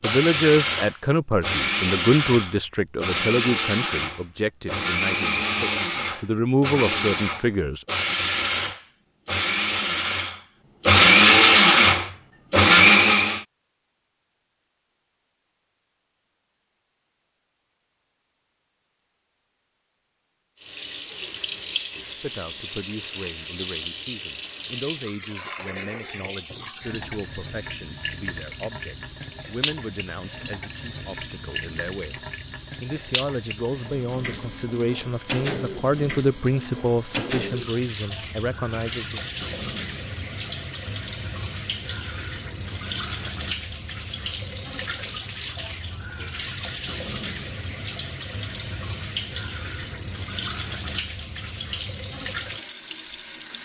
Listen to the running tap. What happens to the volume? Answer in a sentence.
The loudness of the running tap stays about the same.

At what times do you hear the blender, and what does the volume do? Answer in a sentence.
The blender can be heard from 0.0 to 13.4 s, getting louder.